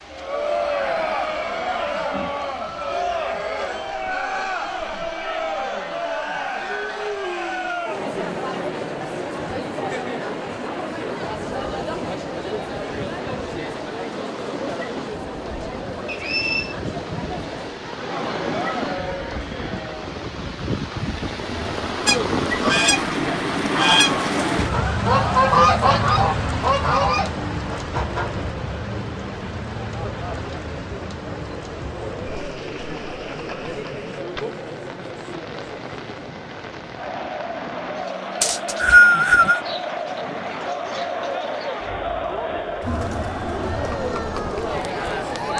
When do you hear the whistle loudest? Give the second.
39 s.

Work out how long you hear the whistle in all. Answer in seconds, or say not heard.
2 s.